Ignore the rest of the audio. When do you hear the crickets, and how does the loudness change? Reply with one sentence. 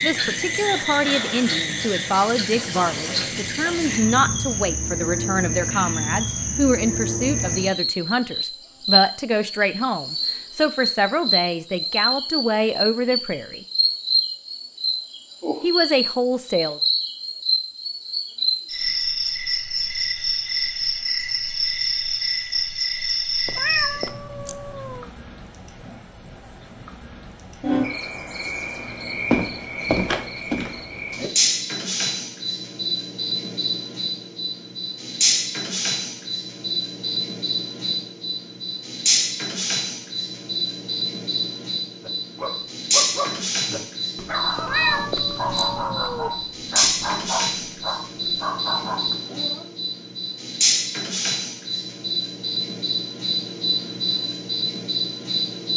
The crickets can be heard from 0.0 to 55.7 s, at a steady volume.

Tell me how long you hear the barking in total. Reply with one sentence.
You can hear the barking for 8 seconds altogether.